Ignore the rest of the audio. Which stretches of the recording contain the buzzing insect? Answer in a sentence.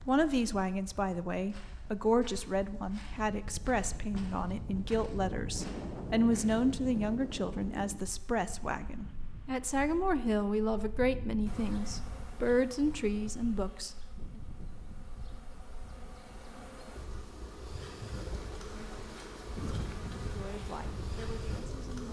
You can hear the buzzing insect from 11.4 to 22.0 s.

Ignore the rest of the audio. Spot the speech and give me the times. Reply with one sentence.
You can hear the speech from 0.1 to 14.4 s and from 20.4 to 22.0 s.